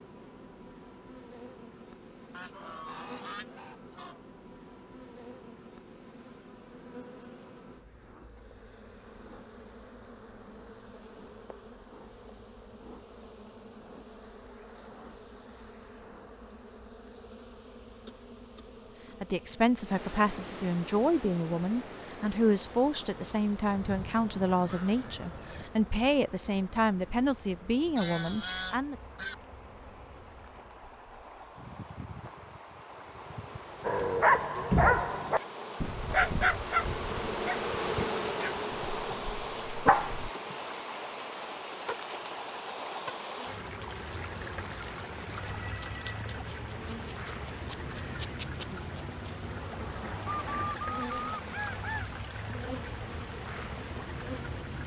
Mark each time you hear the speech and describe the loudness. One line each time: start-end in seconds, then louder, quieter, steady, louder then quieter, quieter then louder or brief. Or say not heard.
19.2-28.9 steady.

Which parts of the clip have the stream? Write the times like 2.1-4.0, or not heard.
19.8-54.8.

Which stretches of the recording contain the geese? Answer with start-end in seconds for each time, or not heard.
2.3-4.2, 23.6-25.7, 27.9-29.4, 50.2-52.1.